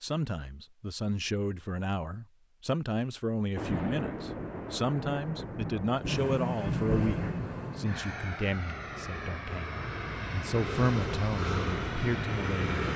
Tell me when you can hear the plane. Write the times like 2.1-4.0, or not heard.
6.0-12.9.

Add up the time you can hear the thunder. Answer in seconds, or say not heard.
4 s.